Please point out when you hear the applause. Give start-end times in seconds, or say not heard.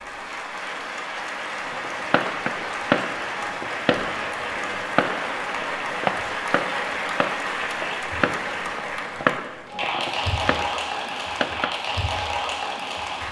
0.0-13.2.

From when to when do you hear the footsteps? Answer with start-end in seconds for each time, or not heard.
not heard.